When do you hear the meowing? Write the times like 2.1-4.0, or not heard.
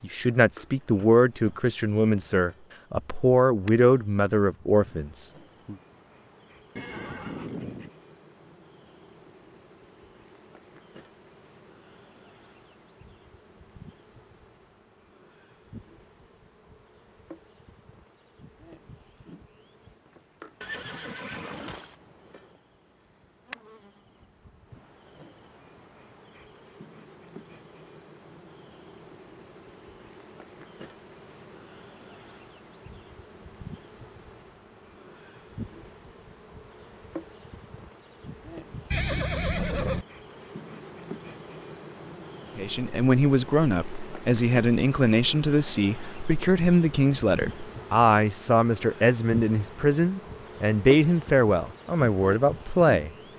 not heard.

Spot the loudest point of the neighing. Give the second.
40 s.